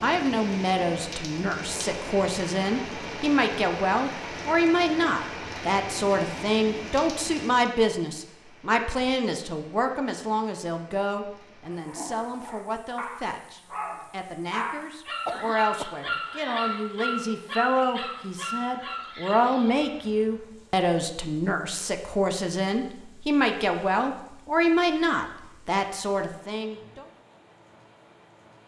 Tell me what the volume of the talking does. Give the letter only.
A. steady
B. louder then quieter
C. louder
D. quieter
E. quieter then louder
E.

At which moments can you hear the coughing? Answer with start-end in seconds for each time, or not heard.
15.1-16.1.